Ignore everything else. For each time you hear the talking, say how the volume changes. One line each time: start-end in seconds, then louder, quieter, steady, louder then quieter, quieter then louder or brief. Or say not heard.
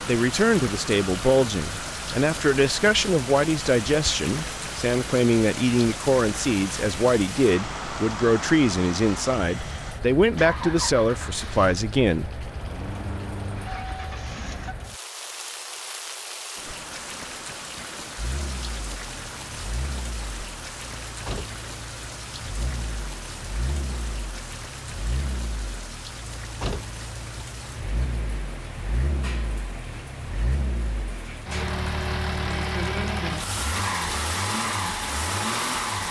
0.1-12.4 steady.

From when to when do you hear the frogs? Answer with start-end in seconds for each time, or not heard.
not heard.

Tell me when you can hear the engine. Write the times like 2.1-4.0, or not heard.
0.0-14.8, 18.1-36.0.